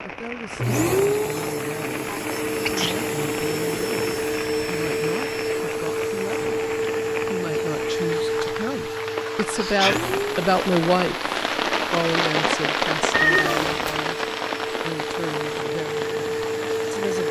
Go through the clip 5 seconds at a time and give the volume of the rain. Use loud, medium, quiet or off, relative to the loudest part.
medium, medium, loud, medium.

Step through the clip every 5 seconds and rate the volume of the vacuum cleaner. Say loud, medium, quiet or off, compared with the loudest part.
loud, loud, medium, loud.